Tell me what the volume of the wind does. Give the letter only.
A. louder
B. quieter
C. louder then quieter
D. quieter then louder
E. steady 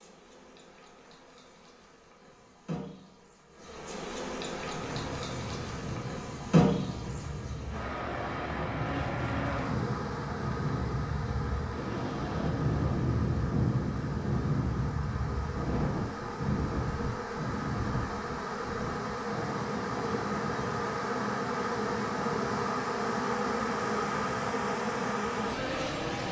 C.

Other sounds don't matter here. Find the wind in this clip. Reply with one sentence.
The wind can be heard from 4.5 to 26.2 s.